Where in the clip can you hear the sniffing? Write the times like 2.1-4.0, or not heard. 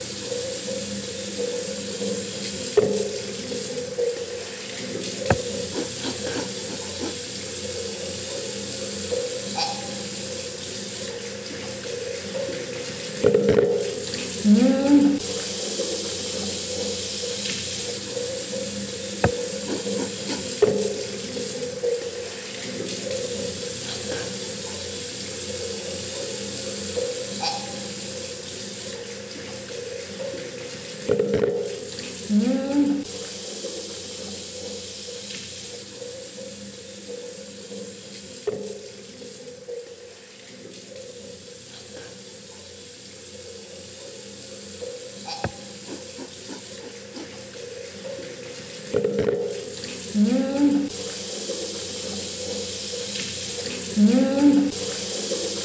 5.3-7.2, 19.2-21.0, 45.4-47.3.